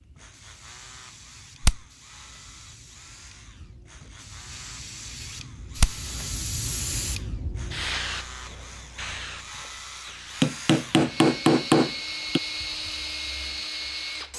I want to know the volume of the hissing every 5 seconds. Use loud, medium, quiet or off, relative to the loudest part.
quiet, loud, quiet.